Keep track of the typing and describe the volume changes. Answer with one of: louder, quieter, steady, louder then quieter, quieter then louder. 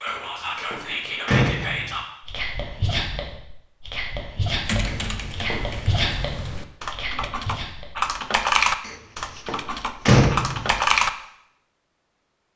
louder then quieter.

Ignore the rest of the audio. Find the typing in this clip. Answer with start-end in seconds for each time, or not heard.
4.7-11.1.